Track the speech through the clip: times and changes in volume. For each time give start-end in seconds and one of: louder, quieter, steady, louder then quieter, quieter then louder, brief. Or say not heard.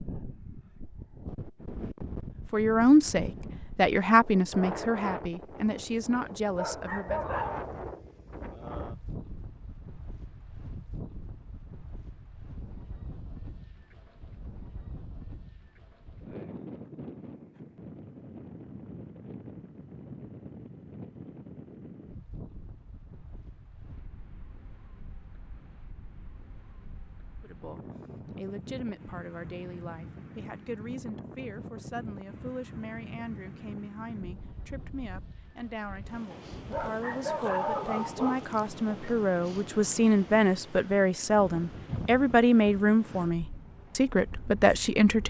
2.5-7.2 quieter
27.4-45.2 louder.